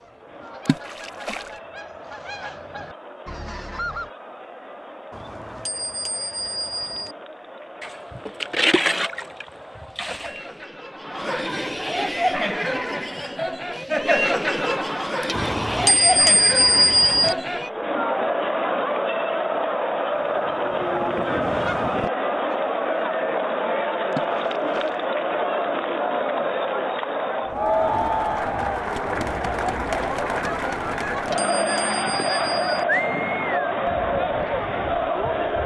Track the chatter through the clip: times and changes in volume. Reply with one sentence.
You can hear the chatter from 0.0 to 35.6 s, getting louder.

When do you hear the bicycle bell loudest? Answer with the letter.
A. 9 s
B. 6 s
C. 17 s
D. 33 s
C.